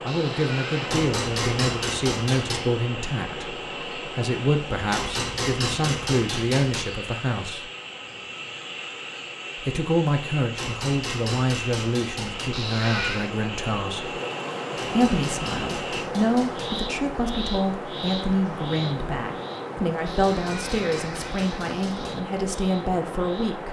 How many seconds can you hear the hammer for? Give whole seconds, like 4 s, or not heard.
10 s.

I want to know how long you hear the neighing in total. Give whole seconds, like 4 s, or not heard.
4 s.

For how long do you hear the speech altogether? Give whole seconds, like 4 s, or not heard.
21 s.